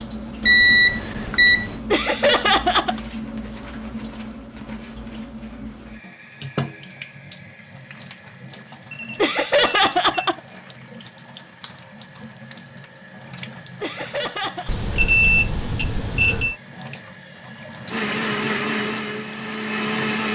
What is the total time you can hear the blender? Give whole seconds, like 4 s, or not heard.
2 s.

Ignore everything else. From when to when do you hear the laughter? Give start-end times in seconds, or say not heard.
1.9-3.0, 9.2-10.4, 13.8-14.7.